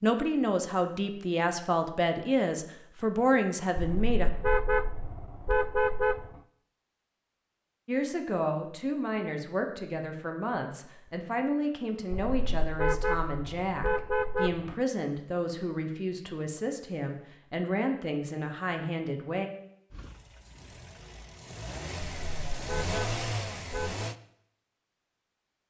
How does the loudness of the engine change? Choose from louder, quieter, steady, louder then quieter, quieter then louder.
louder.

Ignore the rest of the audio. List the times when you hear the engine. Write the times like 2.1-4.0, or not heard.
19.9-24.1.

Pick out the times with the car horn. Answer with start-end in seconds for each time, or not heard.
3.8-6.3, 12.1-14.8, 22.0-24.1.